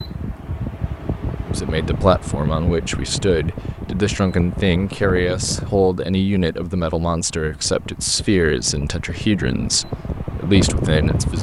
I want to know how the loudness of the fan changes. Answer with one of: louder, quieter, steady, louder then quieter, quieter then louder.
quieter then louder.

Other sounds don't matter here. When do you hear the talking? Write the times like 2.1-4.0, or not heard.
1.4-11.3.